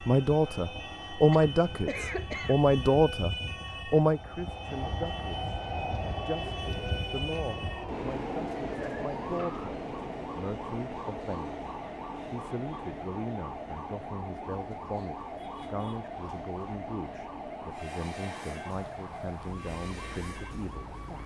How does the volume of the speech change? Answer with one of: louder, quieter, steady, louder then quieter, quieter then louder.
quieter.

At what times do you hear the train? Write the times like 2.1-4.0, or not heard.
0.0-21.2.